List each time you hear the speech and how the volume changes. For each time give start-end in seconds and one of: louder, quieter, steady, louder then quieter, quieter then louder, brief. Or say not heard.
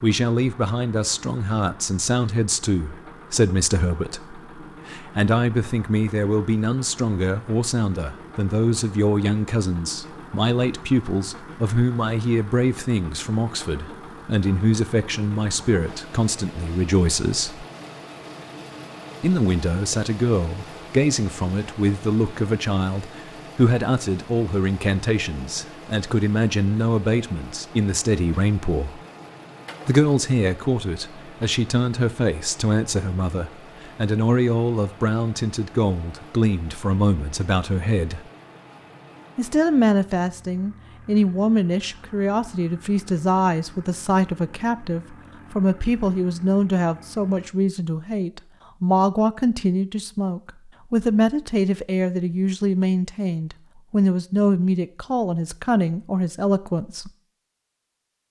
0.0-17.6 steady
19.2-29.0 steady
29.9-38.2 steady
39.4-57.1 steady.